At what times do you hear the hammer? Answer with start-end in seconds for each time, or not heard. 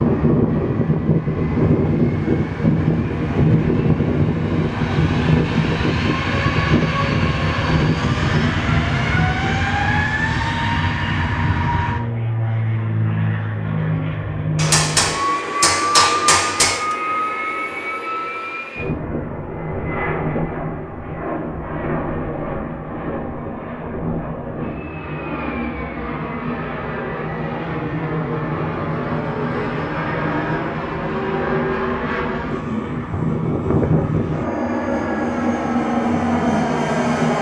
14.6-16.9.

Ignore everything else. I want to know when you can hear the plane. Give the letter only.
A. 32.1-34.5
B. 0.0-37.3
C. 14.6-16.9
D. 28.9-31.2
B.